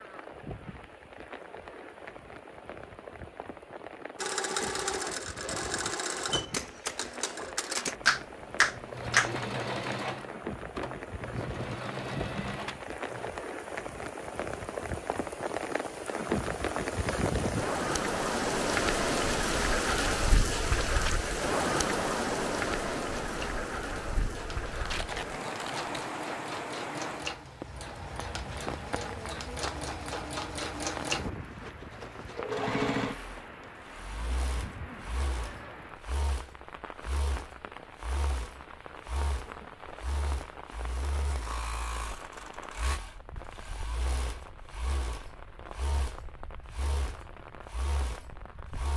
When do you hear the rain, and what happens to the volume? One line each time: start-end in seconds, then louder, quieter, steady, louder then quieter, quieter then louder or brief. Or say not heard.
0.0-48.9 louder then quieter.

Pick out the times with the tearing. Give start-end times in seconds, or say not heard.
24.8-26.1.